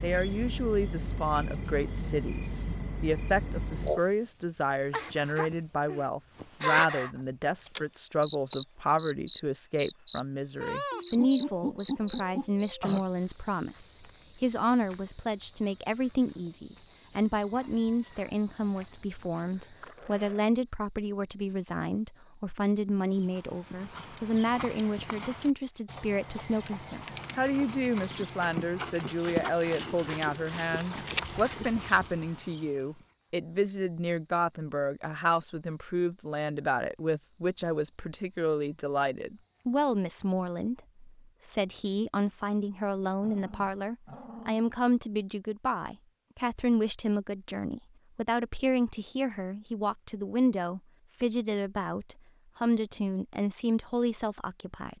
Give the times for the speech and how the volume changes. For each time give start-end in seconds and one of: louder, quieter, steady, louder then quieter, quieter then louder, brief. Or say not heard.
0.0-54.9 steady.